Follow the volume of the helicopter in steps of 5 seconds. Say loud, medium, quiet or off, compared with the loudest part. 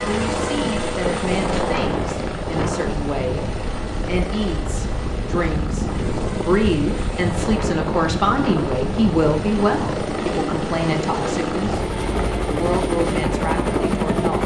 loud, medium, loud.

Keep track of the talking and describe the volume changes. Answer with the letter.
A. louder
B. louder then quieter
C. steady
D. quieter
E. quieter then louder
B.